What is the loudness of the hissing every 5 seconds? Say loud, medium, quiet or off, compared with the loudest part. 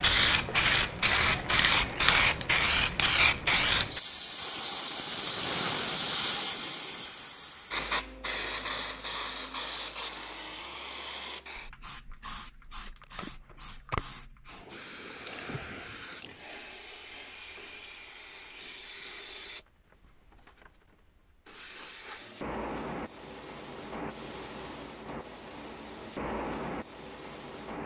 loud, medium, quiet, quiet, quiet, quiet.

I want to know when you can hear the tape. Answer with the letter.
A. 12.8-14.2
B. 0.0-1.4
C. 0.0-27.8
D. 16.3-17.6
A.